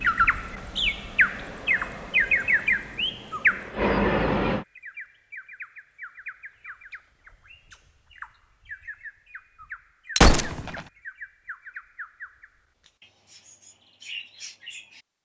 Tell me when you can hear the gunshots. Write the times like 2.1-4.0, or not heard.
10.2-10.8.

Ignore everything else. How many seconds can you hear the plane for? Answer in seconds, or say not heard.
5 s.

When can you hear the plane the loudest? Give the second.
4 s.